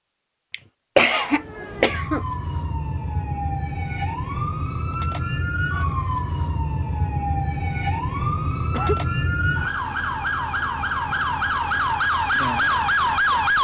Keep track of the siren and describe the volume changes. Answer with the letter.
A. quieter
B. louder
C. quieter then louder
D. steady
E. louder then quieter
B.